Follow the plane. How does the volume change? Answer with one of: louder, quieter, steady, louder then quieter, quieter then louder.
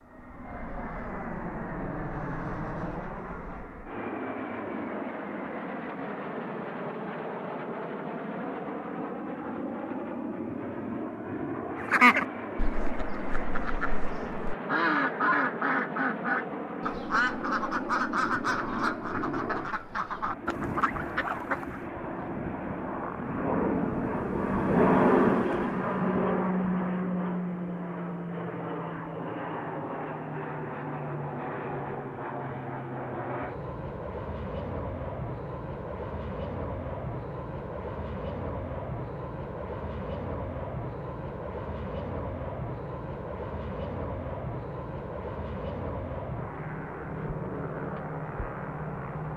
louder then quieter.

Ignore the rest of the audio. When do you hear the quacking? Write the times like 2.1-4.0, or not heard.
11.8-21.9.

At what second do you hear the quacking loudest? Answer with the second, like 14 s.
12 s.